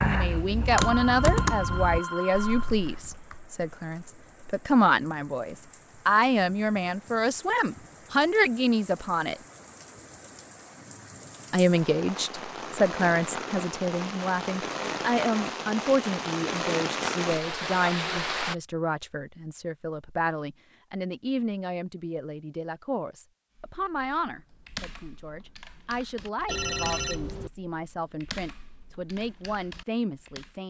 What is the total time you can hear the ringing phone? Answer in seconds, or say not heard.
3 s.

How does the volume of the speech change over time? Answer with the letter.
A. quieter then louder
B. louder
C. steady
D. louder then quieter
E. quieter
E.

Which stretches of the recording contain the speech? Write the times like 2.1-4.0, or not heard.
0.0-9.4, 11.5-30.6.